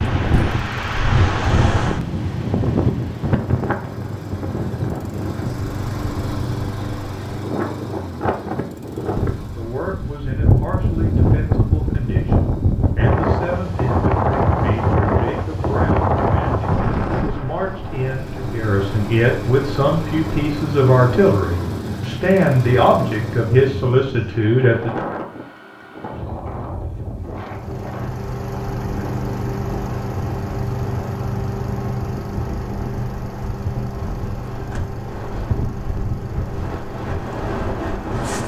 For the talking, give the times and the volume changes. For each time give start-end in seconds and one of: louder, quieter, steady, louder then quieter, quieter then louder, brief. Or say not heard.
9.4-25.1 louder.